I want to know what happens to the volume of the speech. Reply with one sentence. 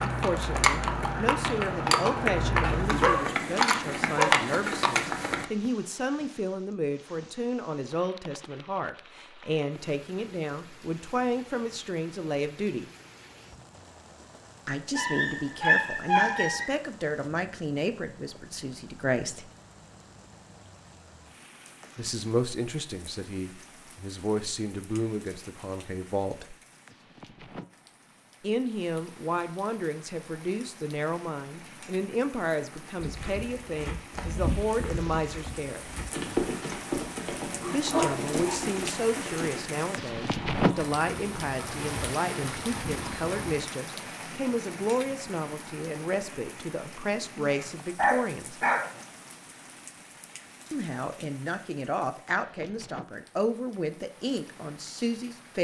The volume of the speech stays about the same.